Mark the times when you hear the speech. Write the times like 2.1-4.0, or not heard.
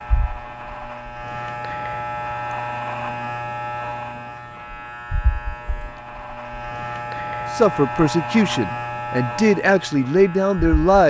7.5-11.0.